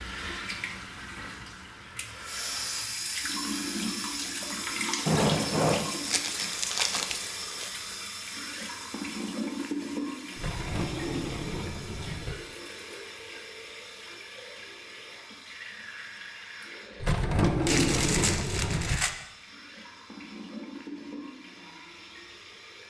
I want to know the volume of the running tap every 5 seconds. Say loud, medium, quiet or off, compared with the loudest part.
loud, loud, medium, medium, medium.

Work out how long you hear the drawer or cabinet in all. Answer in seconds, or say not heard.
5 s.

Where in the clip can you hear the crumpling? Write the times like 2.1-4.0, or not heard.
5.9-7.7, 17.6-19.1.